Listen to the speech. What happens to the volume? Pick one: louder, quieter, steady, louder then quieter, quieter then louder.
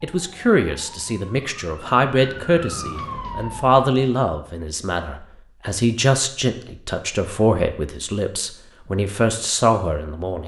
steady.